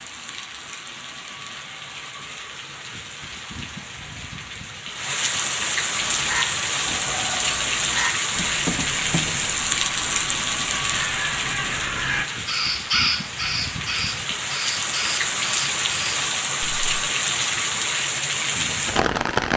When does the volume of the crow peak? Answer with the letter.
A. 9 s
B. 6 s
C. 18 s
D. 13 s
D.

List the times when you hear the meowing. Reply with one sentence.
The meowing can't be heard in this clip.